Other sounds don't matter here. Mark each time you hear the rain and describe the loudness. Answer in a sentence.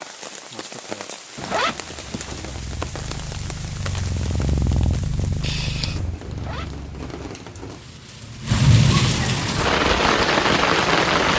The rain can be heard from 0.0 to 11.3 s, getting louder.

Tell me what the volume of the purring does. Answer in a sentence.
The volume of the purring goes up, then down.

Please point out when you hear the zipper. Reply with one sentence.
You can hear the zipper from 1.4 to 2.5 s and from 6.3 to 6.8 s.